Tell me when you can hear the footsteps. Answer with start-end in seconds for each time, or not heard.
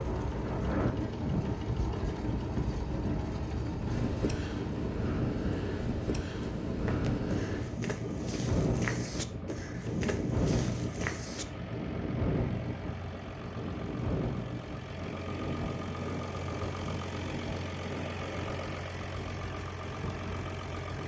6.7-11.4.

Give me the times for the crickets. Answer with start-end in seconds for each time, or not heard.
not heard.